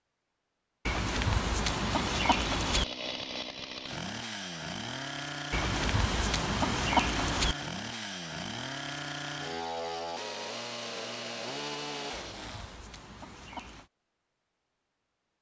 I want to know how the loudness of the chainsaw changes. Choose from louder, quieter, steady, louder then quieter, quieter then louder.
steady.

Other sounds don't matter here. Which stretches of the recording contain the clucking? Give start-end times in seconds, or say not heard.
0.8-2.9, 5.5-7.5, 12.1-13.9.